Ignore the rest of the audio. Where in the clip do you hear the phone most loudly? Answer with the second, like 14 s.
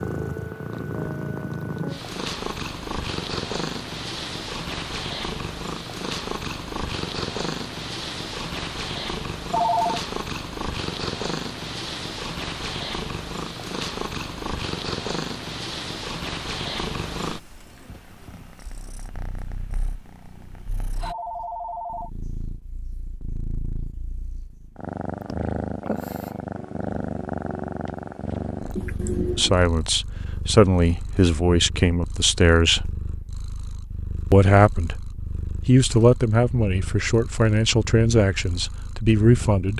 10 s.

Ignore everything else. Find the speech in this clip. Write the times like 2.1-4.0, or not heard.
29.4-32.9, 34.3-39.7.